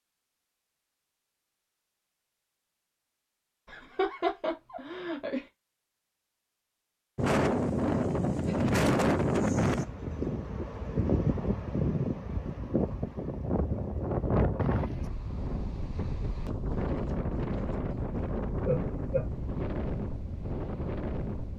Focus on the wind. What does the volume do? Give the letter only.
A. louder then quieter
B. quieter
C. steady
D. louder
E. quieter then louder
B.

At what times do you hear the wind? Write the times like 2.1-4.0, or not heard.
7.2-21.5.